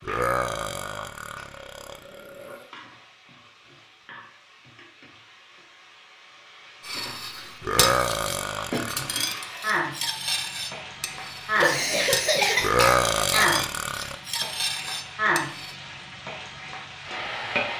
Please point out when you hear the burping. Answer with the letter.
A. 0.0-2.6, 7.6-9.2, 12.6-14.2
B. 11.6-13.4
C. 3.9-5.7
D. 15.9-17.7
A.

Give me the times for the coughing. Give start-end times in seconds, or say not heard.
11.6-13.4.